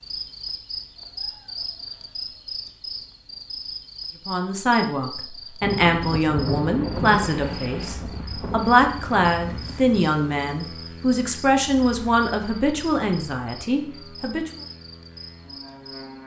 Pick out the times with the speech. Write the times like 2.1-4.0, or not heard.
4.2-14.6.